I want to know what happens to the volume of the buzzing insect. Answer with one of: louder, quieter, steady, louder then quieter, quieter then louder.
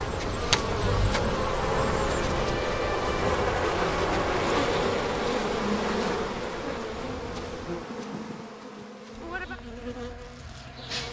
quieter.